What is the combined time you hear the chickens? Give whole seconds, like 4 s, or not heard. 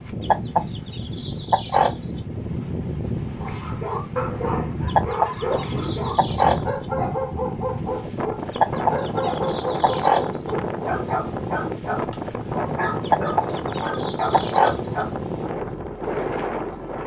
8 s.